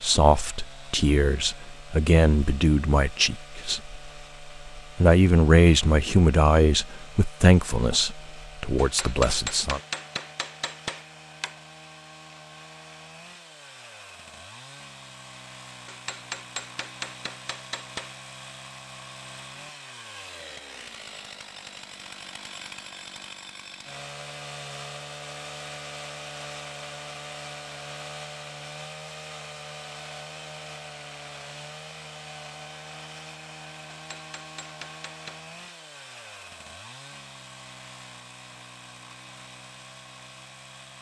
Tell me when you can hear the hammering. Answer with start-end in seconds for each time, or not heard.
8.8-11.6, 15.8-18.1, 33.9-35.4.